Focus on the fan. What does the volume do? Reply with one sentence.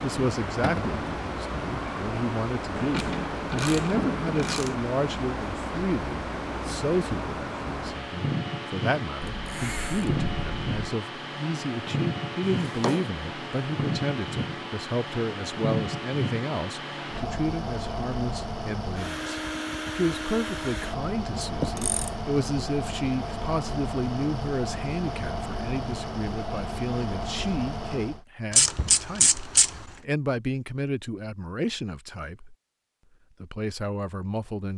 The loudness of the fan stays about the same.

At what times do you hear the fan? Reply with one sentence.
The fan can be heard from 0.0 to 28.2 s.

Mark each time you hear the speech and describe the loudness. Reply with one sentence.
The speech can be heard from 0.0 to 32.5 s, at a steady volume; and briefly from 33.4 to 34.7 s.